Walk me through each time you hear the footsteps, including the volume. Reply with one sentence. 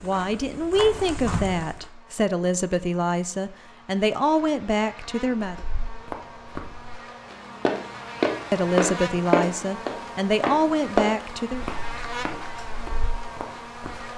The footsteps can be heard briefly from 0.0 to 1.9 s; and from 5.4 to 14.1 s, getting louder then quieter.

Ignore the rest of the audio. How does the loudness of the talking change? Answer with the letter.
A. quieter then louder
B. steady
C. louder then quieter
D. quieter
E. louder
B.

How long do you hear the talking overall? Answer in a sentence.
You can hear the talking for 9 seconds altogether.